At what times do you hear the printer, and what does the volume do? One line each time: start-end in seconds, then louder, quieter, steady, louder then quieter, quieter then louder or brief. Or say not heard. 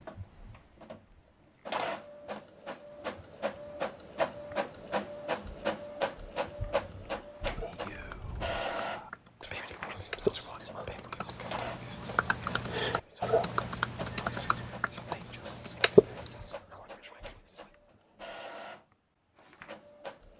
0.0-20.3 quieter.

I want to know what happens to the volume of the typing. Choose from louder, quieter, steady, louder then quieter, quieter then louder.
louder.